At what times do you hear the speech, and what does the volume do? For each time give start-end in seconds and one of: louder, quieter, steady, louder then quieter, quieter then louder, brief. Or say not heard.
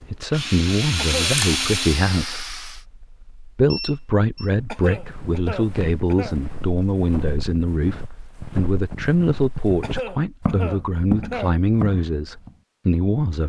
0.1-13.4 steady.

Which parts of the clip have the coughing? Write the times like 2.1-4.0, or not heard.
0.9-1.4, 4.7-6.3, 9.8-11.6.